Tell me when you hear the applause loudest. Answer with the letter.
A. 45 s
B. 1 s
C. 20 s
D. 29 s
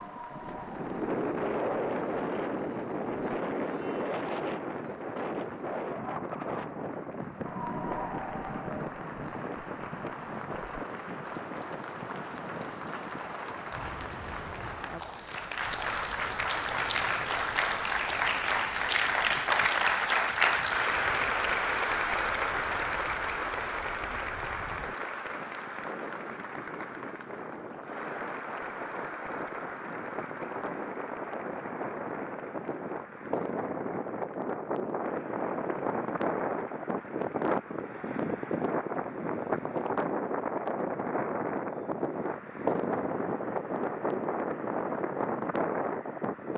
C.